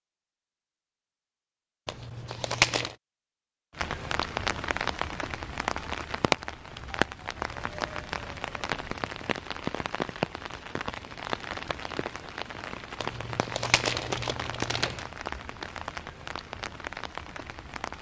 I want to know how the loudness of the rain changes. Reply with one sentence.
The volume of the rain goes down.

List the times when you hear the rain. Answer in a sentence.
You can hear the rain from 3.8 to 17.9 s.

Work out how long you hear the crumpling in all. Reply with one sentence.
You can hear the crumpling for 3 seconds altogether.